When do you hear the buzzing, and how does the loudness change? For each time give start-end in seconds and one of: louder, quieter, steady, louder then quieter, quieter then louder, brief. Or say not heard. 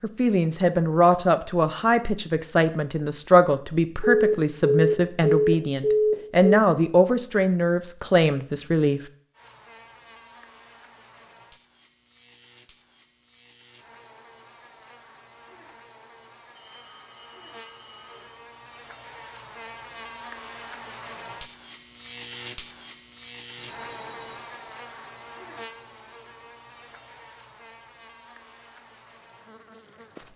9.3-30.3 louder then quieter.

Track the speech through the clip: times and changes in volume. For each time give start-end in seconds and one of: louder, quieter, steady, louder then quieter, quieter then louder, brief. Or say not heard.
0.0-9.0 steady.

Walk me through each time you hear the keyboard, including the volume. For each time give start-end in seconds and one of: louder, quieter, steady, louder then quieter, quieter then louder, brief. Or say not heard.
not heard.